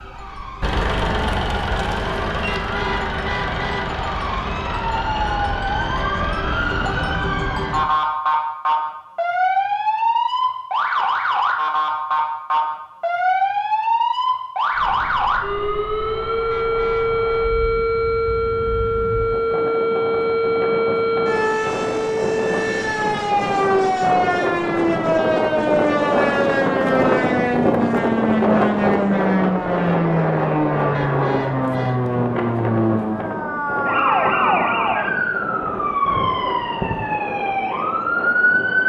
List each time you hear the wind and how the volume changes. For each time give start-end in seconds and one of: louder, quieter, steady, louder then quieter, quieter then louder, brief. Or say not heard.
14.7-38.8 louder then quieter.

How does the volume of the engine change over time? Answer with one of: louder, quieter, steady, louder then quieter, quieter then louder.
quieter.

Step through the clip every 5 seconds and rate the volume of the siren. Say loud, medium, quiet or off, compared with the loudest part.
medium, loud, loud, loud, loud, loud, loud, loud.